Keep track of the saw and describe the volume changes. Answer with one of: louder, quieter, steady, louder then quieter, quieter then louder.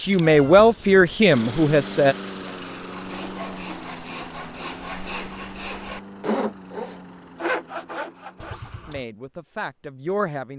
louder.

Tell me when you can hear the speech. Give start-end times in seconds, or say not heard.
0.0-2.1, 8.8-10.5.